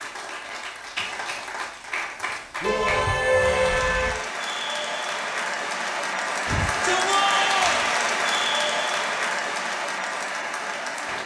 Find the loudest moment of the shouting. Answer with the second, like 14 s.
7 s.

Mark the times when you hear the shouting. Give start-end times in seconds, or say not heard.
2.6-3.9, 6.5-7.8.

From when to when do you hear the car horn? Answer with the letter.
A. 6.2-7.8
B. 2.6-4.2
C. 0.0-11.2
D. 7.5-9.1
B.